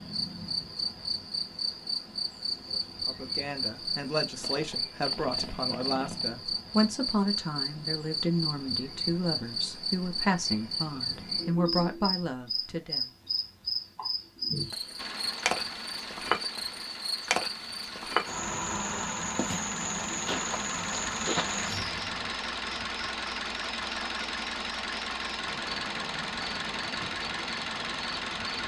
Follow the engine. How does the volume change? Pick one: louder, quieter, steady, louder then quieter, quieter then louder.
louder.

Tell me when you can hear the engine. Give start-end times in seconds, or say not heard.
14.9-28.6.